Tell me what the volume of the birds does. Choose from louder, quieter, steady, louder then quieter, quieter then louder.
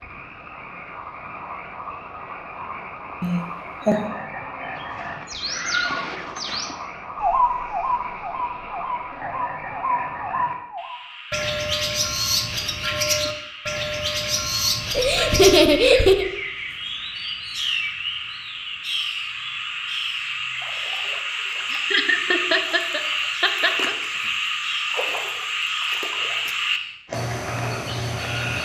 quieter.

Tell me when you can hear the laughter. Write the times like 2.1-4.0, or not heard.
3.2-4.1, 14.9-16.2, 21.7-23.9.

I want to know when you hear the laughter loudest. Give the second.
16 s.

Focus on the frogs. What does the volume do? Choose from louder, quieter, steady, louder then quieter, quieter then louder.
louder.